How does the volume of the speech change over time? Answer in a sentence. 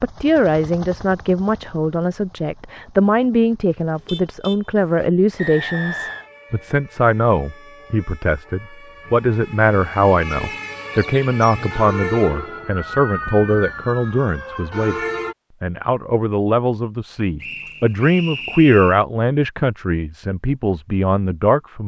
The volume of the speech stays about the same.